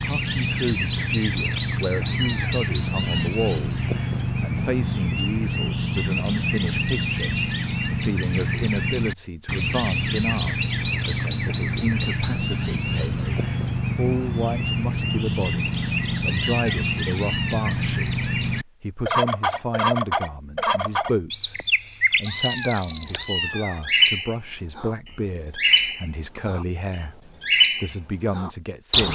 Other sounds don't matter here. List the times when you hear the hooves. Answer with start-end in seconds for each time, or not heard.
not heard.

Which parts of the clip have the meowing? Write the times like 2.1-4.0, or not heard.
2.0-3.3, 16.2-17.8, 22.2-23.9.